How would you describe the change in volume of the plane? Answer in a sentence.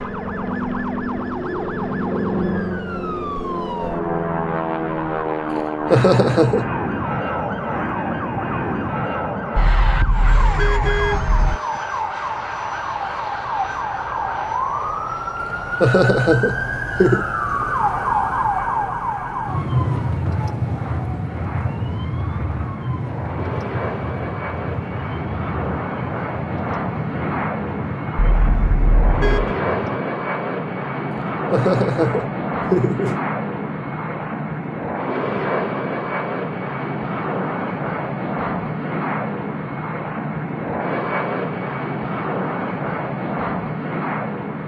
The volume of the plane goes down, then up.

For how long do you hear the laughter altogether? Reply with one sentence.
The laughter can be heard for 5 seconds in total.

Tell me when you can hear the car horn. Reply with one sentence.
The car horn can be heard from 9.6 to 11.6 s and from 28.4 to 29.6 s.